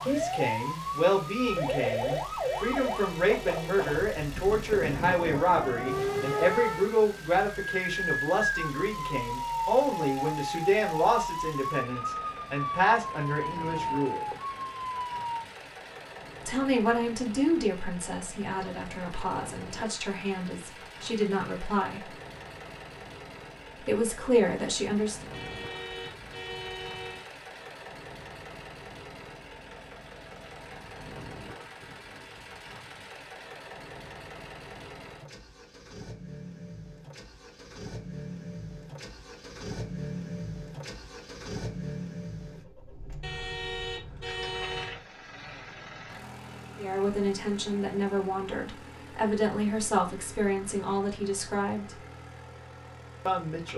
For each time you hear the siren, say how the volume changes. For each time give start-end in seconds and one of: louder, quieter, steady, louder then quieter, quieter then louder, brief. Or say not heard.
0.0-15.4 steady.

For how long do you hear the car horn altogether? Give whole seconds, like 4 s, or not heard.
6 s.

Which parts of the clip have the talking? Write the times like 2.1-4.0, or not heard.
0.0-14.2, 16.4-22.1, 23.9-25.2, 46.8-52.0, 53.2-53.7.